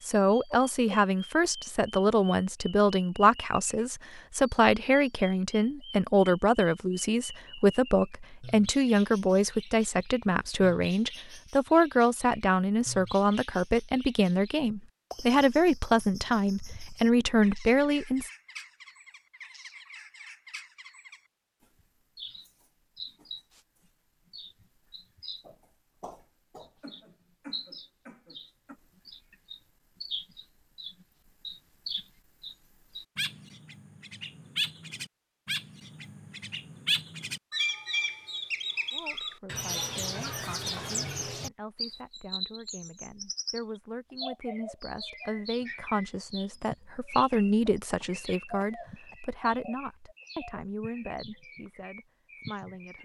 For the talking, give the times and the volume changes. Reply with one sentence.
The talking can be heard from 0.1 to 18.3 s, at a steady volume; and from 38.9 to 53.0 s, getting louder then quieter.